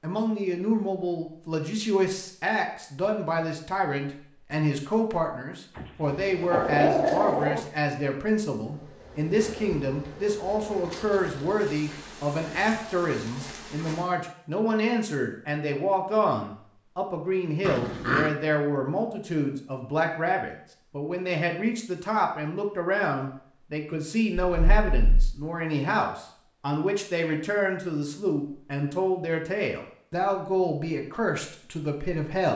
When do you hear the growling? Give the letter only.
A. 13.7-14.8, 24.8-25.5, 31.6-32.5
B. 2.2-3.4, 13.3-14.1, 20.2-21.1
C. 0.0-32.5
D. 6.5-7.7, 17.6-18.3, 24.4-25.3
D.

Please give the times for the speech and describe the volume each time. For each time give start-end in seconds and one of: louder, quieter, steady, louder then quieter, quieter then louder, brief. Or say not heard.
0.0-32.5 steady.